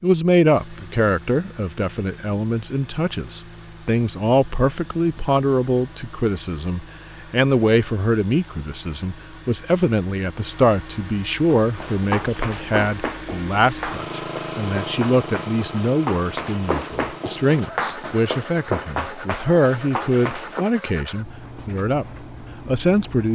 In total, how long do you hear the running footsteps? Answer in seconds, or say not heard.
9 s.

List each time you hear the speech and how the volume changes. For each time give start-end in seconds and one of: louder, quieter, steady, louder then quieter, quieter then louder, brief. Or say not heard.
0.0-23.2 steady.